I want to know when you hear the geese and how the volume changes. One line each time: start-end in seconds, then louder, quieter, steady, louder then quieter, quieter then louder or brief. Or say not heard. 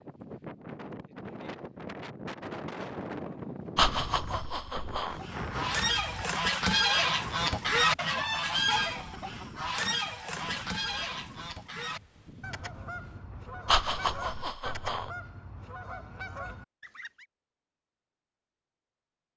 5.1-17.2 quieter.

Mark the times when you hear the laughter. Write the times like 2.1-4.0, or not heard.
3.8-5.2, 13.7-15.1.